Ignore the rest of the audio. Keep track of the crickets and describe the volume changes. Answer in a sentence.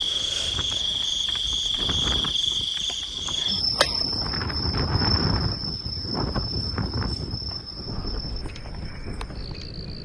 The loudness of the crickets goes down.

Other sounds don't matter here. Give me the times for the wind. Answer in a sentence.
The wind can be heard from 0.0 to 10.0 s.